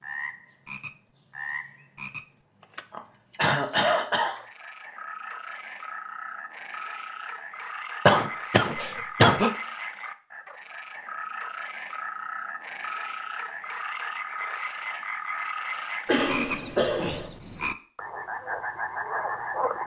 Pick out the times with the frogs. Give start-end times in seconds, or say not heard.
0.0-19.8.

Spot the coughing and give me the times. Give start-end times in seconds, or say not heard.
2.9-4.4, 8.1-9.5, 16.1-17.3.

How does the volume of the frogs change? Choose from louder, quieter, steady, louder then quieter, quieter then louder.
louder.